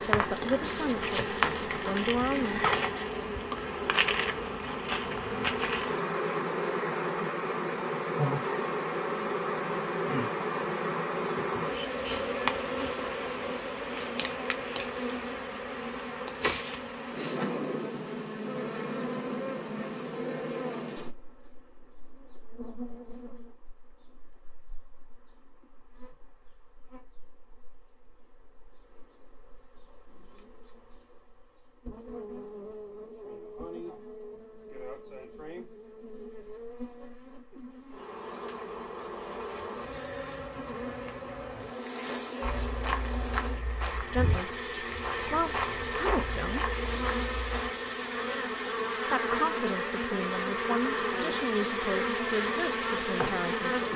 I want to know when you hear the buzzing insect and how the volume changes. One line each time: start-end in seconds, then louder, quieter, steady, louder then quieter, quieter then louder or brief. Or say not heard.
0.0-53.9 quieter then louder.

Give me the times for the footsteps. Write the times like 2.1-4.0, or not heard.
42.4-47.7.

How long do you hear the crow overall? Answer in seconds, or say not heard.
not heard.